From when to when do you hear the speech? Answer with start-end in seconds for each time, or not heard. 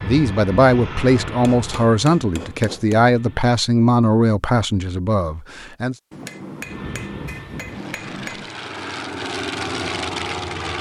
0.0-6.0.